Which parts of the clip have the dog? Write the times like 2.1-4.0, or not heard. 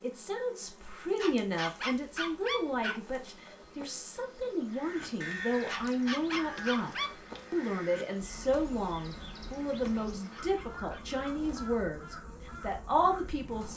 1.1-3.0, 5.7-7.2, 10.1-11.2.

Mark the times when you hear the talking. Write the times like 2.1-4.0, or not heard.
0.0-13.7.